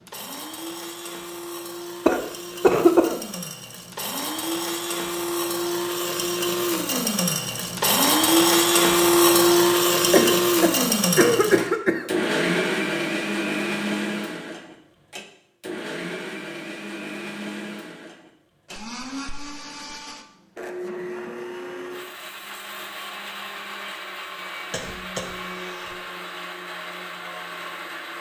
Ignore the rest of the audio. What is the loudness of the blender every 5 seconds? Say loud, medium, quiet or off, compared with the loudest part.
quiet, loud, loud, quiet, quiet, quiet.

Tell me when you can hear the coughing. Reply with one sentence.
The coughing can be heard from 2.0 to 3.2 s, from 10.1 to 12.1 s and from 24.7 to 25.9 s.